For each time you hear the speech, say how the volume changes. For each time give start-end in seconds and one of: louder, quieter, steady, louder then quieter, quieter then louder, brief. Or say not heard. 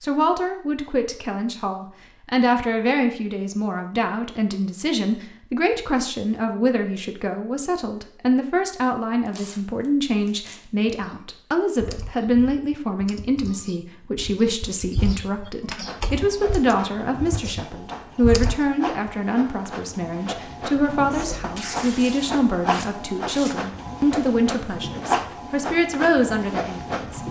0.0-27.2 steady.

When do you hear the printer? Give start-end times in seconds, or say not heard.
15.8-27.2.